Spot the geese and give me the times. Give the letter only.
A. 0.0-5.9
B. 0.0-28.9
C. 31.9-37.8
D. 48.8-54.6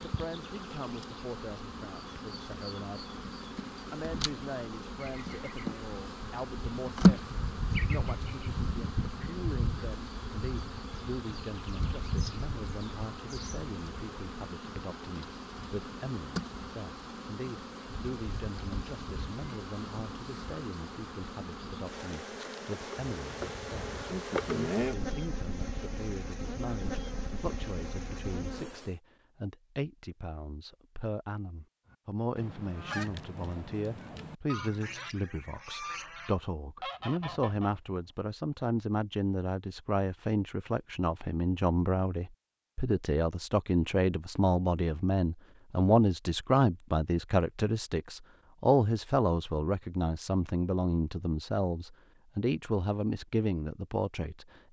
C.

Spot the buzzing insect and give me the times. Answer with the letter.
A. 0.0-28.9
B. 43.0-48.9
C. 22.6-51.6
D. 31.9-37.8
A.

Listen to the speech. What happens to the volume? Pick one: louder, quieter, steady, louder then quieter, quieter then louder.
louder.